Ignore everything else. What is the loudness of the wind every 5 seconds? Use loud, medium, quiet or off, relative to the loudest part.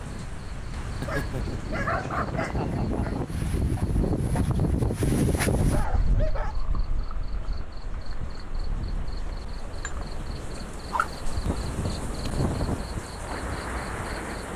loud, loud, medium.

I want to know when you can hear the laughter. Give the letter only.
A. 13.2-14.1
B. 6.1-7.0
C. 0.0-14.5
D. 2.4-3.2
D.